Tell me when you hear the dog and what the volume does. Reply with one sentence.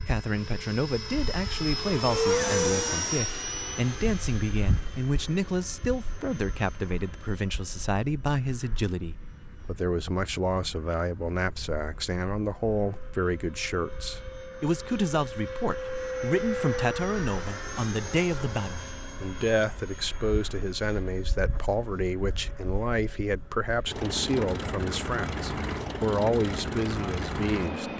The dog can't be heard in this clip.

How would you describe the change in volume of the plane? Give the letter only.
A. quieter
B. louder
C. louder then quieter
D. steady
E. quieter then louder
E.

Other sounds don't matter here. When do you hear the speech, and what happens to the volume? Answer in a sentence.
You can hear the speech from 0.1 to 27.9 s, at a steady volume.